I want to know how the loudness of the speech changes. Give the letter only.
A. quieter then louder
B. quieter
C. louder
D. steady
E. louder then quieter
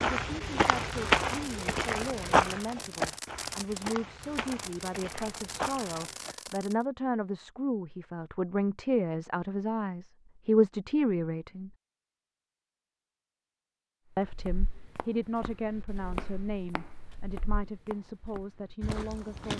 E.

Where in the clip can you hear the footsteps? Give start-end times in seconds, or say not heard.
0.0-6.3, 14.2-19.5.